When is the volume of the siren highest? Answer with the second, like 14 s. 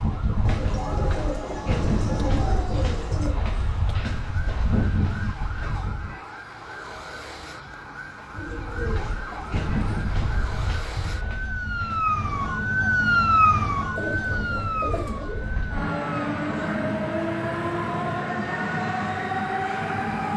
13 s.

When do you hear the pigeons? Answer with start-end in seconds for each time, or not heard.
0.5-3.4, 8.3-10.1, 13.9-15.5.